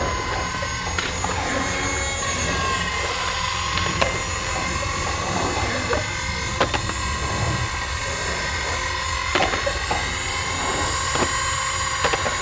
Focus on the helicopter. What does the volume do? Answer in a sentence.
The volume of the helicopter stays about the same.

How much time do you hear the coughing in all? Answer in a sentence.
You can hear the coughing for 4 seconds altogether.